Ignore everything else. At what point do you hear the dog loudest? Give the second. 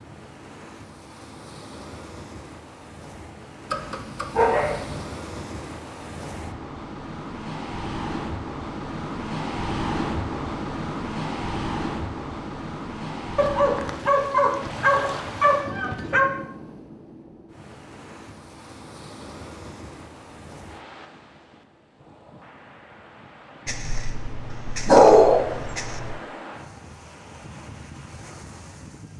25 s.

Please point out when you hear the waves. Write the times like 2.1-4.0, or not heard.
0.0-29.1.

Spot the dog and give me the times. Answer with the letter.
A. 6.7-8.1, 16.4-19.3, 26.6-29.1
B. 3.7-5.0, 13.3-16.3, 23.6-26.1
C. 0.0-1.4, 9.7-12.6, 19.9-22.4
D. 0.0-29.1
B.